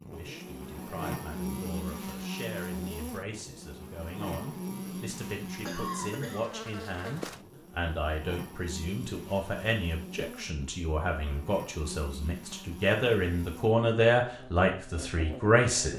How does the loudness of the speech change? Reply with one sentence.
The volume of the speech goes up.